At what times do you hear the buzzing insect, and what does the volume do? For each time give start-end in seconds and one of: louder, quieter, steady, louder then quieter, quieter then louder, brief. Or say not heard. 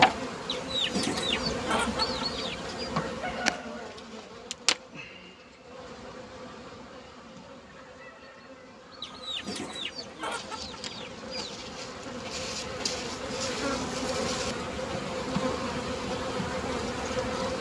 0.0-17.5 quieter then louder.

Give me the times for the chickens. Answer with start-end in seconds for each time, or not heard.
0.5-2.9, 9.0-11.6.